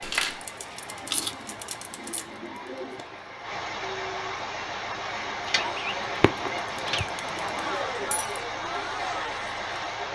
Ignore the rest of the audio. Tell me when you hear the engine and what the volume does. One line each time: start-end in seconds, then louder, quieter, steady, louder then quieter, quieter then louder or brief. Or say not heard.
0.1-10.1 louder.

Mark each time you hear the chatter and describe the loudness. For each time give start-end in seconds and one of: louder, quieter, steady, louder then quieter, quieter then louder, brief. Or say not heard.
0.1-10.0 louder.